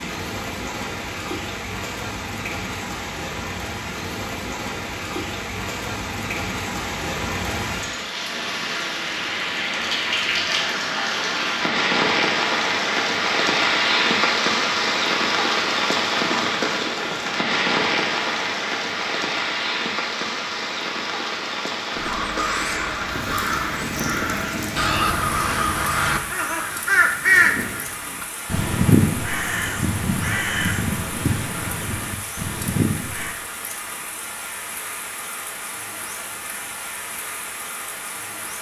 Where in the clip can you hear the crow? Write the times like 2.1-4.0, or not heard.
21.9-33.4.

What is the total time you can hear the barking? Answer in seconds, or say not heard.
not heard.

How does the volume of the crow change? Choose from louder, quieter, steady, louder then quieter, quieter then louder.
louder then quieter.